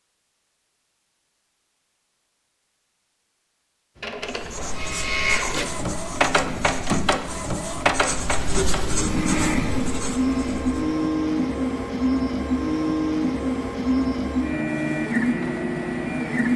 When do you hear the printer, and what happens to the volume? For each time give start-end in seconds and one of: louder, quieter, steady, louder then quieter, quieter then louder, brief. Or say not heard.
4.0-16.5 steady.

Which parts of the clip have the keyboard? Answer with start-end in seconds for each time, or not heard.
not heard.